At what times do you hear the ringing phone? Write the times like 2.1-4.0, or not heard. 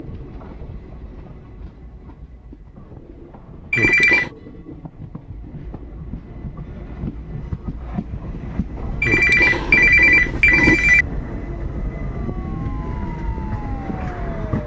3.7-4.3, 9.0-11.1.